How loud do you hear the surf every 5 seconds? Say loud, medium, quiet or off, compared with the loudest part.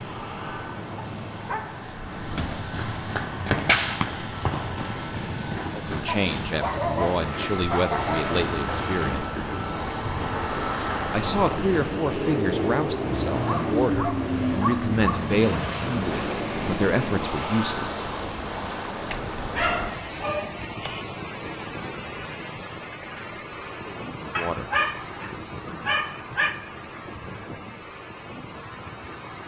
medium, medium, loud, loud, loud, medium.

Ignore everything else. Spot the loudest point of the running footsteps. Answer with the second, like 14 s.
4 s.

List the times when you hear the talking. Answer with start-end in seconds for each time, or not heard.
5.7-9.3, 11.1-18.1, 23.8-24.7.